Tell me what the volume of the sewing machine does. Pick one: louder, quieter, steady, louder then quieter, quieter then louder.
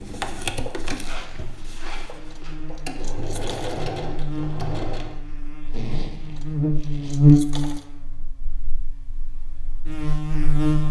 quieter then louder.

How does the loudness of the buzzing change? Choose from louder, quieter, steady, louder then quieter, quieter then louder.
louder then quieter.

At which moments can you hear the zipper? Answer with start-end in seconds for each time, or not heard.
1.0-2.5, 5.7-7.2.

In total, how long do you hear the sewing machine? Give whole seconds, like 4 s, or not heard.
5 s.